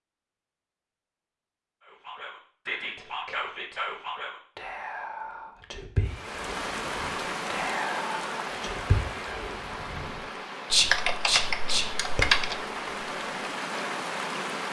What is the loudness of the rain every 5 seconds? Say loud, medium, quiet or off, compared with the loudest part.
off, loud, loud.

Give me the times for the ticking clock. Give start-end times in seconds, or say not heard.
not heard.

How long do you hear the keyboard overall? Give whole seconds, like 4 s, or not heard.
2 s.